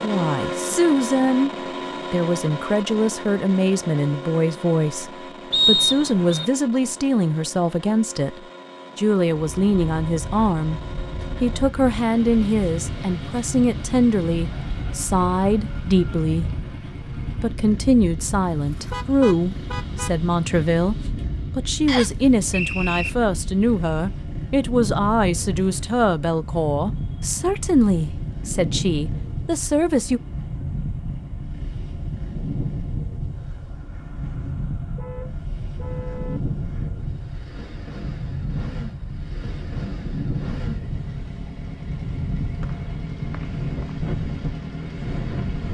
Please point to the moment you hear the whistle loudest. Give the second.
6 s.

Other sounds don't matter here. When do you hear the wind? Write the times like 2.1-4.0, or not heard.
9.5-45.6.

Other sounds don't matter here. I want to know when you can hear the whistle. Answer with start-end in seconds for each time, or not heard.
5.5-6.5, 21.9-23.1, 42.6-44.0.